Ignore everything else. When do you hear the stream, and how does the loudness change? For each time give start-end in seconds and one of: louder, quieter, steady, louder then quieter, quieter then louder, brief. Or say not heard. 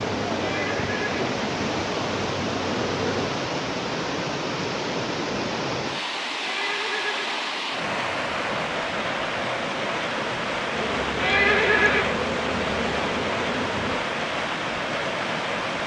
0.0-15.8 steady.